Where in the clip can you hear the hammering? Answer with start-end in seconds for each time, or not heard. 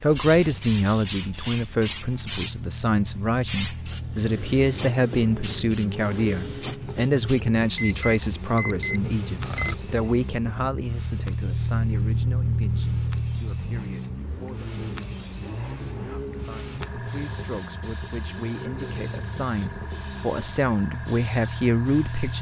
not heard.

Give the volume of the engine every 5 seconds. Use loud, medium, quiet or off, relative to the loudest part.
medium, medium, loud, medium, medium.